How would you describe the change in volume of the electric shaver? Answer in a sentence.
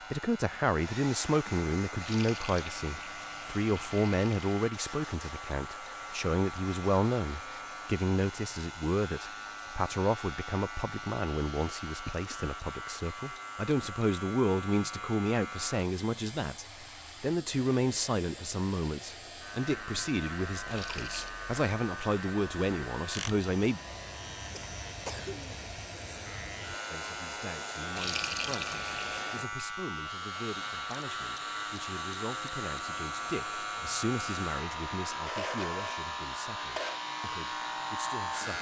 The volume of the electric shaver goes up.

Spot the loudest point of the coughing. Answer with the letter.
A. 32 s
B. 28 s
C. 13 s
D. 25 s
D.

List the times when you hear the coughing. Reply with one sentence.
The coughing can be heard from 12.1 to 12.6 s and from 24.6 to 25.6 s.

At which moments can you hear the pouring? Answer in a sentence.
You can hear the pouring from 1.9 to 4.5 s, from 20.6 to 21.4 s and from 27.9 to 29.3 s.